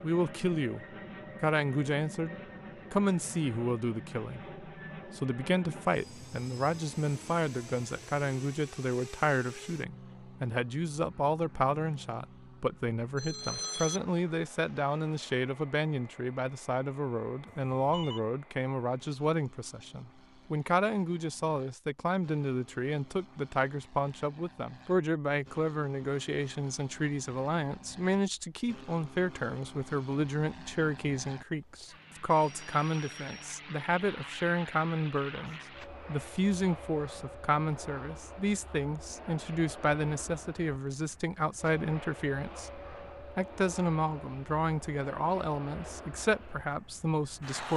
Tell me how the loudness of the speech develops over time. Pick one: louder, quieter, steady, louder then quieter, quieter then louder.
steady.